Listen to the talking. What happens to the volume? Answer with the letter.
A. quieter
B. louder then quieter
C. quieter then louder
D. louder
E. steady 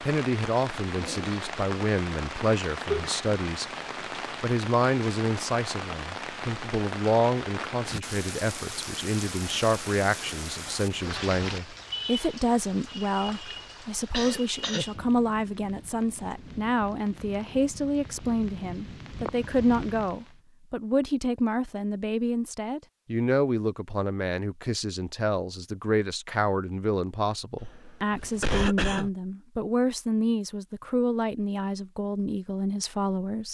E.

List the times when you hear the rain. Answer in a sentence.
The rain can be heard from 0.0 to 20.4 s.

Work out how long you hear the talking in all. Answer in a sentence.
You can hear the talking for 33 seconds altogether.